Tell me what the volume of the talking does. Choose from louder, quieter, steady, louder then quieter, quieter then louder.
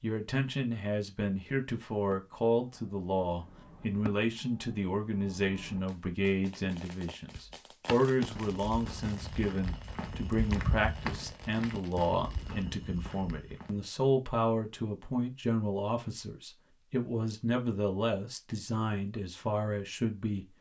steady.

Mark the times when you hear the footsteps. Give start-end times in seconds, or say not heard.
7.8-13.8.